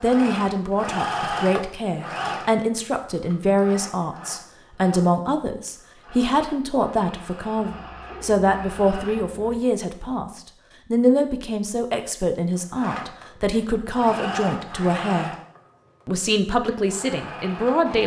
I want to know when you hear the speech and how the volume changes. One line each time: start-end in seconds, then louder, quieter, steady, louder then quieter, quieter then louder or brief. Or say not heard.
0.0-15.3 steady
16.1-18.0 brief.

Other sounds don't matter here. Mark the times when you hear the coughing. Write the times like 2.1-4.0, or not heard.
not heard.